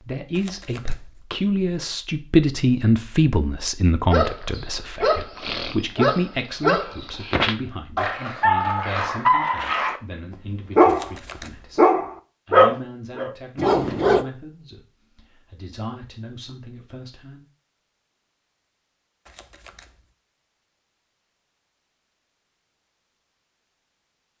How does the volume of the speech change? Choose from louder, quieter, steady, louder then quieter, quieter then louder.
quieter.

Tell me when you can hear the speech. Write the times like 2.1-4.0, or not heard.
0.0-17.4.